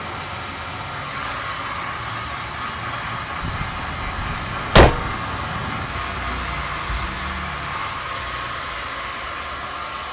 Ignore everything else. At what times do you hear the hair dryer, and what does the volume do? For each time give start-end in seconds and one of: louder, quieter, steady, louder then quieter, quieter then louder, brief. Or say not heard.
0.0-10.0 steady.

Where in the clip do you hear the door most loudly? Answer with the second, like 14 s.
5 s.